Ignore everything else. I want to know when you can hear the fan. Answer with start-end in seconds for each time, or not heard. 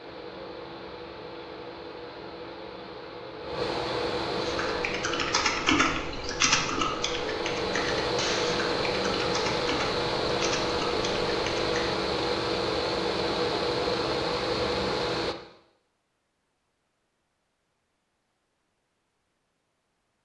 0.0-15.3.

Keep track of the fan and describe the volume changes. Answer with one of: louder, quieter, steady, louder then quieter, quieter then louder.
louder.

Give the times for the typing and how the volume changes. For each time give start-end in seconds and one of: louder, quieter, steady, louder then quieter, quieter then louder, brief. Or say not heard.
4.3-11.9 quieter.